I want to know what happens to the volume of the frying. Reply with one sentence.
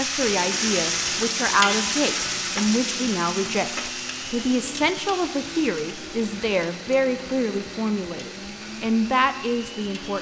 The loudness of the frying goes down.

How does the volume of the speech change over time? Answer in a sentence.
The volume of the speech stays about the same.